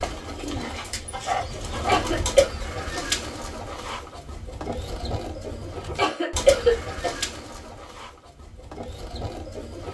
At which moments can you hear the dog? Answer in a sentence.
The dog can be heard from 1.2 to 2.0 s.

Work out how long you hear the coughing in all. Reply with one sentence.
The coughing can be heard for 3 seconds in total.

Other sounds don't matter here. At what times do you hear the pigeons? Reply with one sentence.
You can hear the pigeons from 0.0 to 9.9 s.